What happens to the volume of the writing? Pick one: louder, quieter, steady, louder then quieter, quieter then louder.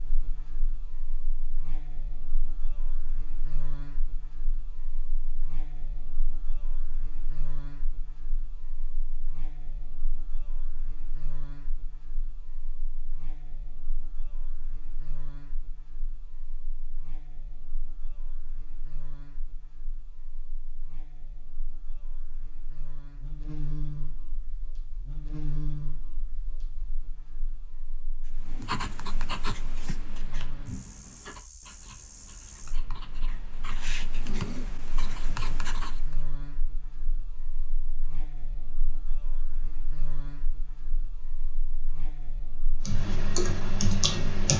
quieter then louder.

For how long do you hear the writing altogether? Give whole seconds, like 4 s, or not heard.
8 s.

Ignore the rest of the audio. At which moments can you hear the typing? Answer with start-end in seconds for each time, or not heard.
42.9-44.5.